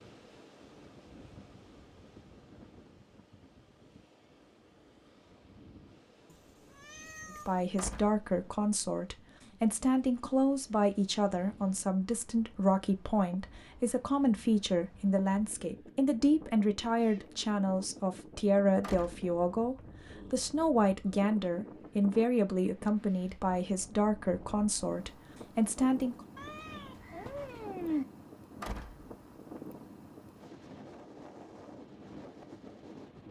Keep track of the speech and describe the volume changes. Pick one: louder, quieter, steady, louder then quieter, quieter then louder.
steady.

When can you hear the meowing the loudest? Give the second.
28 s.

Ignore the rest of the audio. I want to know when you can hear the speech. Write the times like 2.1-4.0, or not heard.
7.5-26.2.